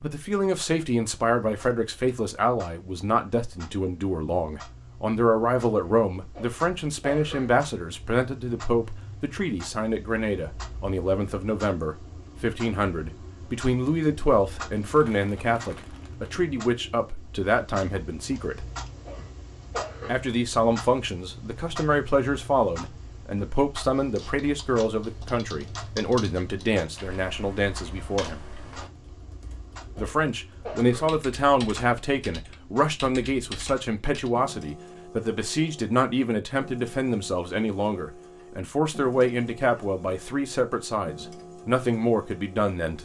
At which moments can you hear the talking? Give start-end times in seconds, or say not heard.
0.0-18.6, 20.1-28.4, 29.9-43.0.